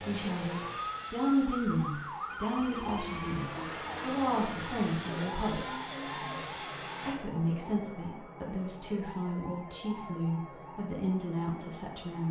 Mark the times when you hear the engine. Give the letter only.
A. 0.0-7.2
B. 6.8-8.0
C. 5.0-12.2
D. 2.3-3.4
A.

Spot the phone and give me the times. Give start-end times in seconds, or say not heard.
2.3-3.4.